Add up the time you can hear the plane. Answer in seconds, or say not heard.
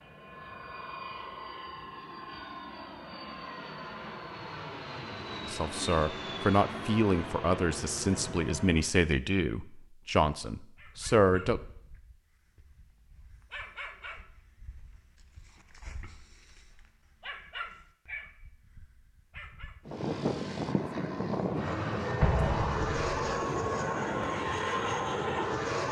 15 s.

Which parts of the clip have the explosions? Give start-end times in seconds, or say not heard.
22.2-23.4.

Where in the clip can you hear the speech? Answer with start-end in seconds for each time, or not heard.
5.5-11.6.